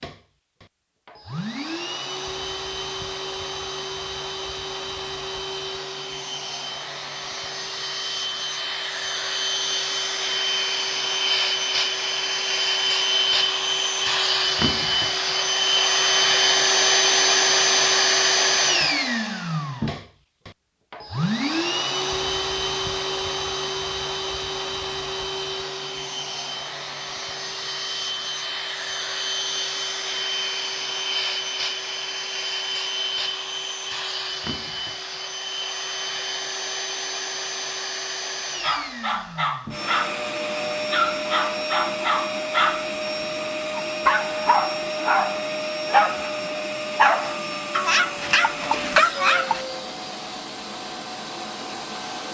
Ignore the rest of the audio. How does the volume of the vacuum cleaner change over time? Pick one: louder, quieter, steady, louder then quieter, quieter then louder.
louder then quieter.